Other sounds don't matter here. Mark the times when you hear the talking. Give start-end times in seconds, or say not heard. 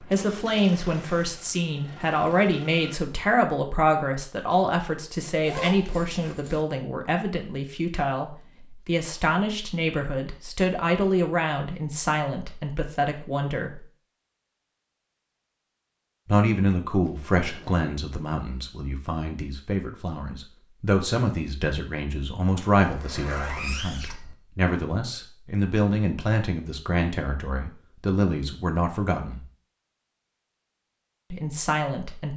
0.0-13.8, 16.2-29.4, 31.3-32.3.